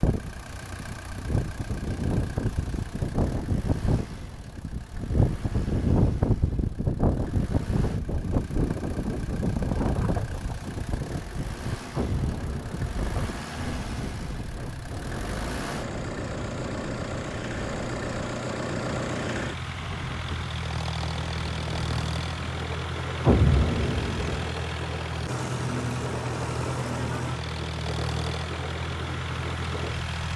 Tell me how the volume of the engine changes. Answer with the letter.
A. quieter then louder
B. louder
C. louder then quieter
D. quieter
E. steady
B.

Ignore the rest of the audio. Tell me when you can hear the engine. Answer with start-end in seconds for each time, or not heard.
0.0-30.3.